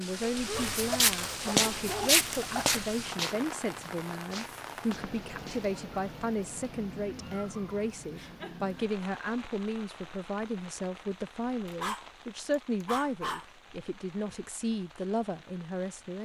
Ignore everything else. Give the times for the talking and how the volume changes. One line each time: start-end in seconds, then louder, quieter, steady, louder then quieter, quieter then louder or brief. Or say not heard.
0.0-16.2 steady.